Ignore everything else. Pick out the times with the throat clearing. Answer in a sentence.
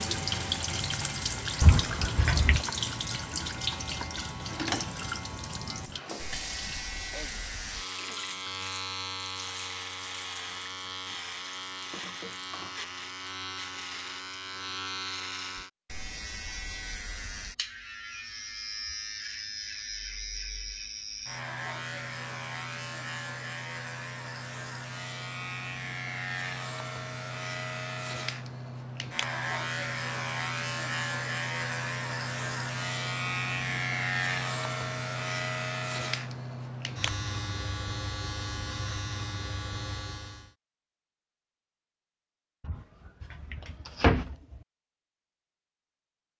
The throat clearing can be heard from 7.0 to 8.3 s.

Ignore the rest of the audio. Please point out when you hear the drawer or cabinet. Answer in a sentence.
The drawer or cabinet can be heard from 1.6 to 2.6 s and from 42.6 to 44.6 s.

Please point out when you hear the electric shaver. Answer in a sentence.
The electric shaver can be heard from 0.0 to 40.5 s.